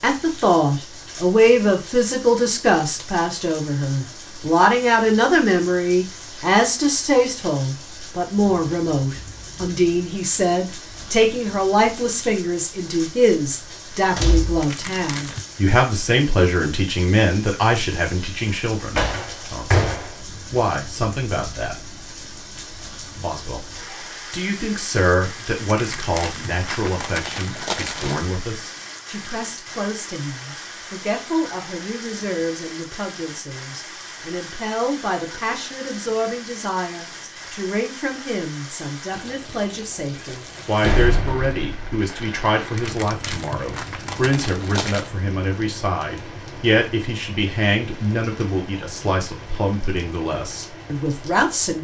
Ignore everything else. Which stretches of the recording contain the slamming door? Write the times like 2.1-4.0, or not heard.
14.2-14.7, 18.9-20.1, 40.8-42.0.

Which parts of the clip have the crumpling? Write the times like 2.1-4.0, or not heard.
14.6-15.4, 25.6-28.2, 42.8-45.1.